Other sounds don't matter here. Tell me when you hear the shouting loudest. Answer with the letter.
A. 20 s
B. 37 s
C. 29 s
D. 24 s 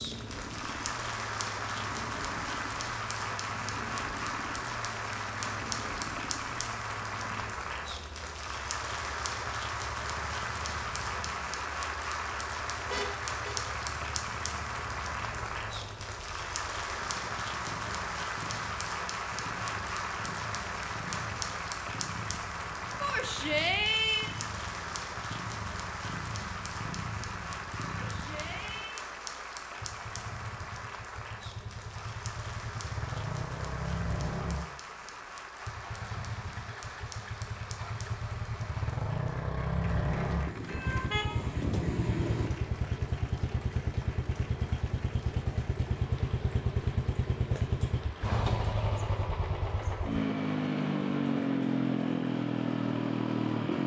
D.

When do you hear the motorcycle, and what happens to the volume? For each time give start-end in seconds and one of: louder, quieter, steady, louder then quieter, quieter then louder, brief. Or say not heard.
0.0-53.8 louder.